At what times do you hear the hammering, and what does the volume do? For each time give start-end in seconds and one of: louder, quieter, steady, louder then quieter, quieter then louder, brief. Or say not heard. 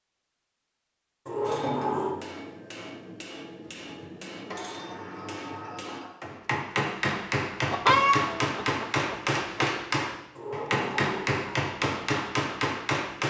1.4-13.2 louder.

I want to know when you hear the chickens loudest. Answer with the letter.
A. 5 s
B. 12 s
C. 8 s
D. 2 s
C.